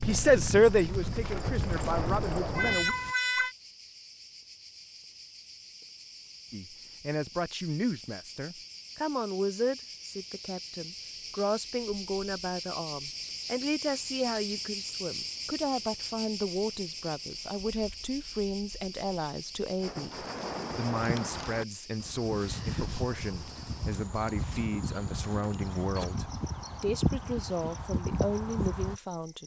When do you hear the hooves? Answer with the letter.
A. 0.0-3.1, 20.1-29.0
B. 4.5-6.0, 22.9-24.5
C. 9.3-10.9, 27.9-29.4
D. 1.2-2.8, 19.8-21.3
A.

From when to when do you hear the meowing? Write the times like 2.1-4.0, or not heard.
2.5-3.5.